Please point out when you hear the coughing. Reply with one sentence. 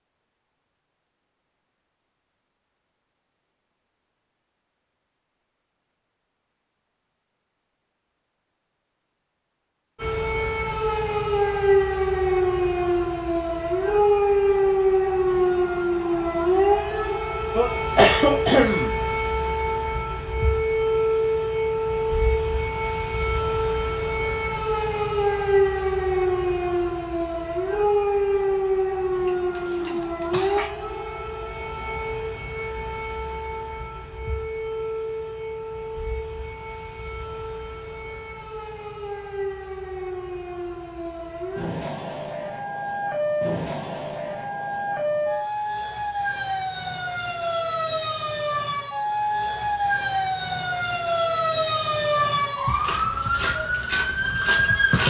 You can hear the coughing from 16.9 to 18.9 s and from 29.2 to 30.7 s.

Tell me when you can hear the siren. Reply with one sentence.
The siren can be heard from 9.9 to 55.0 s.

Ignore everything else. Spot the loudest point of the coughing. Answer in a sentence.
The volume of the coughing peaks at 18 seconds.